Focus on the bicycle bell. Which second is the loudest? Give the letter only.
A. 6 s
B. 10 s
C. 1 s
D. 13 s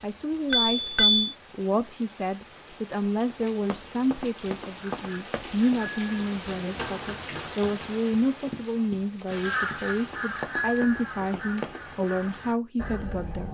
C.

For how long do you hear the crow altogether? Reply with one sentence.
You can hear the crow for 4 seconds altogether.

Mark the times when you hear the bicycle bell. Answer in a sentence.
You can hear the bicycle bell from 0.5 to 1.3 s, from 4.8 to 6.2 s and from 9.8 to 11.1 s.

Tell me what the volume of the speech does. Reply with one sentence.
The volume of the speech stays about the same.